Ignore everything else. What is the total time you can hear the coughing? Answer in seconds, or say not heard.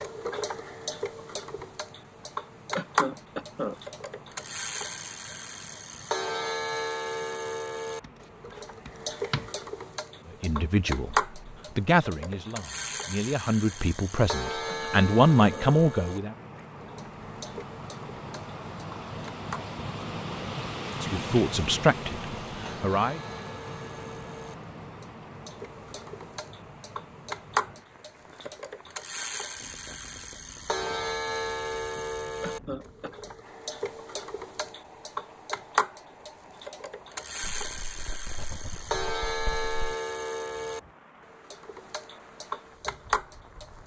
3 s.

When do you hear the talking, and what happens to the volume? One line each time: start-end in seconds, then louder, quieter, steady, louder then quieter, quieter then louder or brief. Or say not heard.
10.4-16.4 louder
21.0-23.2 brief.